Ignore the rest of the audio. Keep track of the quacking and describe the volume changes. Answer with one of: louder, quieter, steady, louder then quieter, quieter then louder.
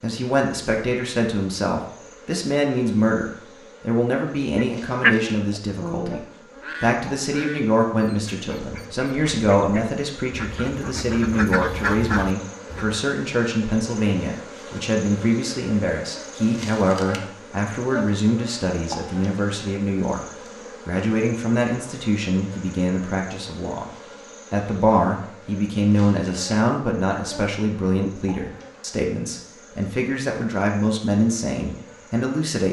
quieter then louder.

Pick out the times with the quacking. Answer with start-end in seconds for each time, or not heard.
4.5-13.0.